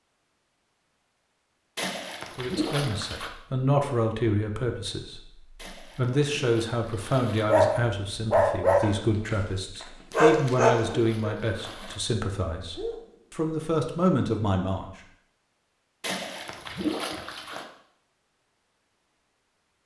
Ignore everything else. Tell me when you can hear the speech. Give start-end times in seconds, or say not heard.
2.4-14.9.